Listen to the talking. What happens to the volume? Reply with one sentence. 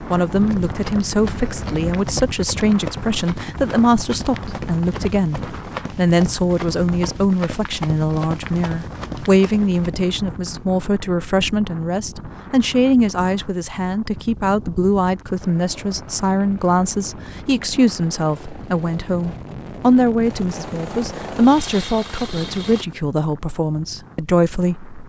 The loudness of the talking stays about the same.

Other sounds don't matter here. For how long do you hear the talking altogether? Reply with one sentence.
The talking can be heard for 25 seconds in total.